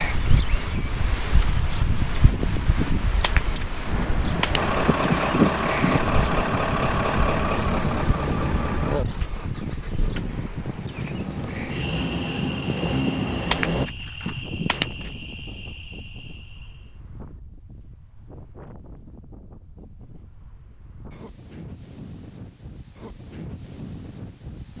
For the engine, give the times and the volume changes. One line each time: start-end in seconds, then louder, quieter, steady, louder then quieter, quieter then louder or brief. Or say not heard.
4.5-13.9 quieter then louder.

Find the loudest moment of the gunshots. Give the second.
5 s.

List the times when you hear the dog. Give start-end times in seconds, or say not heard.
not heard.